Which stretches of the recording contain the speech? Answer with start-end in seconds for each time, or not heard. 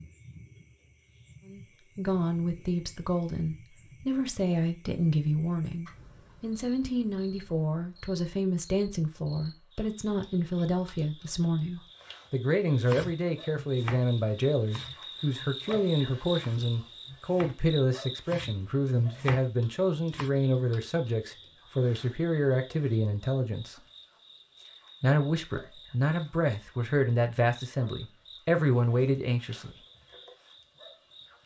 1.4-23.8, 25.0-29.8.